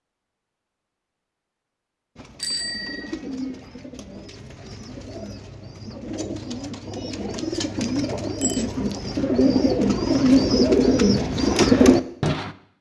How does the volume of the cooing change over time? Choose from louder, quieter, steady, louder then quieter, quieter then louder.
louder.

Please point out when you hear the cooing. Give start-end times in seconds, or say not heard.
2.1-12.5.